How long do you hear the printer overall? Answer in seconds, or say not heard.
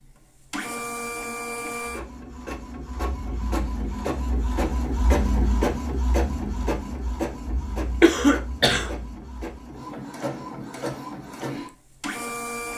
13 s.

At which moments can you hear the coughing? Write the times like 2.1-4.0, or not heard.
8.0-8.9.